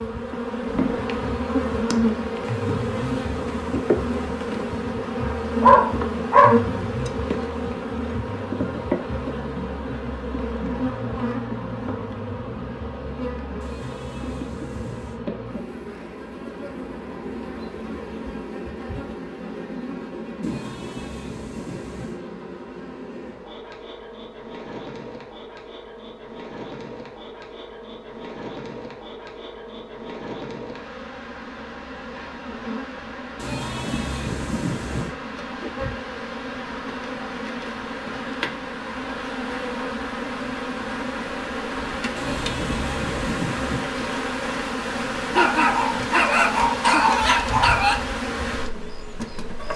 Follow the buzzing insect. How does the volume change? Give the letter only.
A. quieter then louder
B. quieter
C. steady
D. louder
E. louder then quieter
A.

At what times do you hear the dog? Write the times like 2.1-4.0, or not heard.
5.6-6.6, 45.3-48.0.